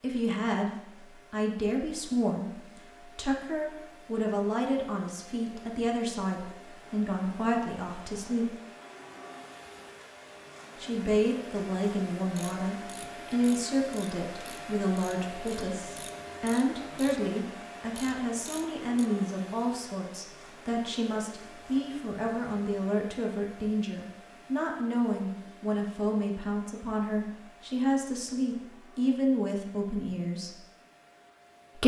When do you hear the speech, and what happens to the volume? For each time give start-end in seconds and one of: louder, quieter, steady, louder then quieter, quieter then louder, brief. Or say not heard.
0.0-8.6 steady
10.8-30.6 steady.